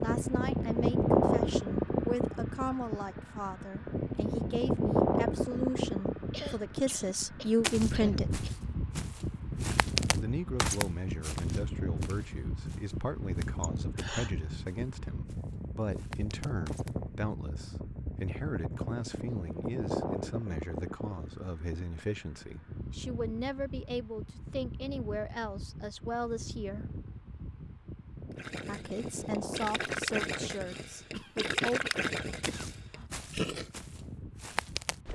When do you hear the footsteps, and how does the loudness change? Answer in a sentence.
You can hear the footsteps from 7.6 to 16.9 s, getting louder then quieter; and briefly from 32.4 to 35.1 s.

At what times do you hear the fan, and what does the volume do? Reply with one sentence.
The fan can be heard from 0.0 to 35.1 s, getting quieter.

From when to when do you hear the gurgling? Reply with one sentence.
The gurgling can be heard from 28.4 to 33.7 s.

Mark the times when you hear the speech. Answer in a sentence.
The speech can be heard from 0.0 to 8.4 s, from 10.2 to 26.9 s and from 28.6 to 31.8 s.